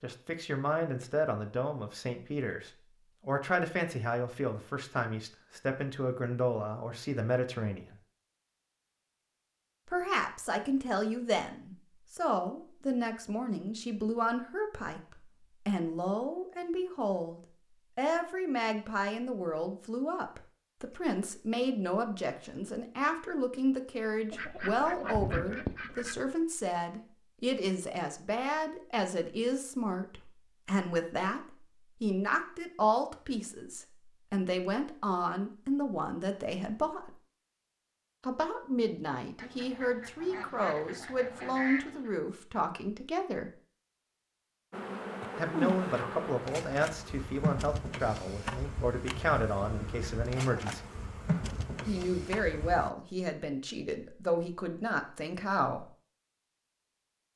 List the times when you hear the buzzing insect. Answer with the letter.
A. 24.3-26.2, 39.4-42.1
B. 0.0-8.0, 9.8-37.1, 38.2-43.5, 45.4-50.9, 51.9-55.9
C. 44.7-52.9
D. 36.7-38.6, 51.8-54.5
C.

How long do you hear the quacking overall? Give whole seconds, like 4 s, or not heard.
5 s.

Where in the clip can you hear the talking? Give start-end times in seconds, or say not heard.
0.0-8.0, 9.8-37.1, 38.2-43.5, 45.4-50.9, 51.9-55.9.